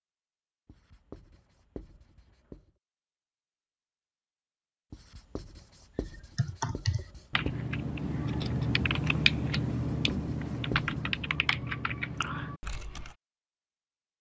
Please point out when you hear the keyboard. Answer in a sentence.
The keyboard can be heard from 6.3 to 13.2 s.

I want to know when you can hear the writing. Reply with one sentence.
The writing can be heard from 0.7 to 2.7 s, from 4.9 to 7.5 s and from 9.8 to 11.2 s.